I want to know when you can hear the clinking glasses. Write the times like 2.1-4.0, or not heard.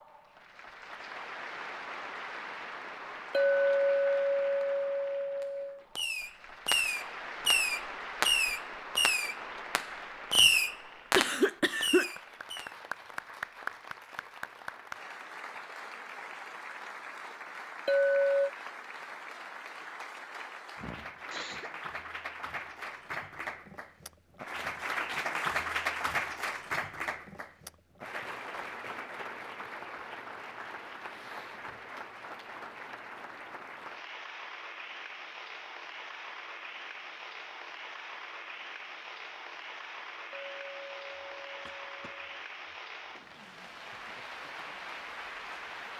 3.3-5.8, 17.9-18.5, 40.3-42.2.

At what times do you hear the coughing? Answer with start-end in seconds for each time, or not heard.
11.2-12.1, 20.8-21.7, 41.6-43.2.